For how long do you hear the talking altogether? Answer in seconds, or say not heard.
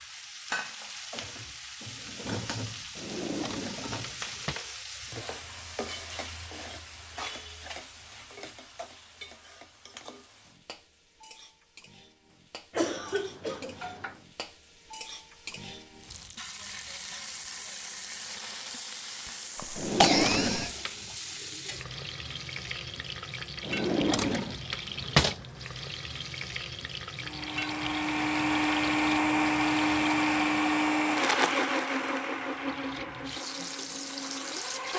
not heard.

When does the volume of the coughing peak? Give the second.
20 s.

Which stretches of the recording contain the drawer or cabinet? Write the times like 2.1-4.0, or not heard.
3.0-4.6, 19.8-21.1, 23.6-25.4.